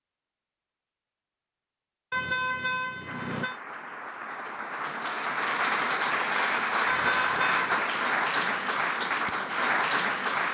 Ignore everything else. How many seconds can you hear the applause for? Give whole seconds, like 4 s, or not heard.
7 s.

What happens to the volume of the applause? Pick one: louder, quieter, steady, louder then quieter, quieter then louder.
louder.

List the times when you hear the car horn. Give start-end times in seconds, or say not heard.
2.1-3.6, 6.8-7.8.